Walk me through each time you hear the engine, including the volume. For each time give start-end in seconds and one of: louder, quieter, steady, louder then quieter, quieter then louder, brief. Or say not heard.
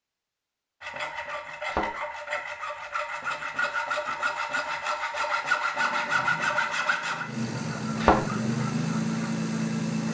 5.8-10.0 louder.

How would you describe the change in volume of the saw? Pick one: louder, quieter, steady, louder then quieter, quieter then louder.
louder then quieter.